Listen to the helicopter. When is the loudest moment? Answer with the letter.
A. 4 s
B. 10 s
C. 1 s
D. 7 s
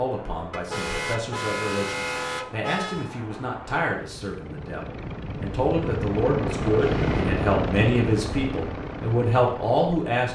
D.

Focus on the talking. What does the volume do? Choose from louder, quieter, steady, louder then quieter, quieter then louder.
louder.